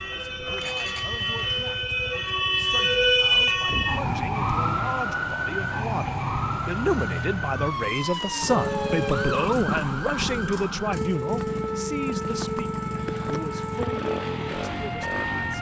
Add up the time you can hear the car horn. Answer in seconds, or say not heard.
2 s.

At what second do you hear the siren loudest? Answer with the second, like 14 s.
3 s.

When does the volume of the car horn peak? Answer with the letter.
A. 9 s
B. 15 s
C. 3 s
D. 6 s
A.